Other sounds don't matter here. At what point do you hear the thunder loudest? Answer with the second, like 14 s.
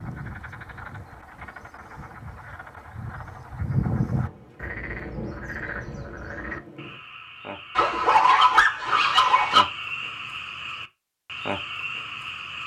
5 s.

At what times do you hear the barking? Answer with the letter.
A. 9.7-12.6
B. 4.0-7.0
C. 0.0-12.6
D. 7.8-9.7
D.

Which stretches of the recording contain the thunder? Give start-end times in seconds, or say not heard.
4.0-7.0.